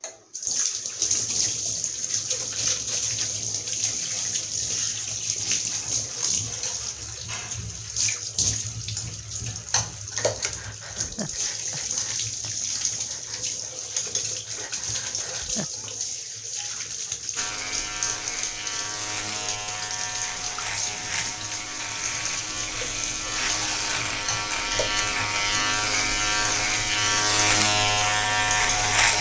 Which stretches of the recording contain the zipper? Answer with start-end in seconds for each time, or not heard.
not heard.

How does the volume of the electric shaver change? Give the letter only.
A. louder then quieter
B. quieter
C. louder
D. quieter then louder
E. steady
C.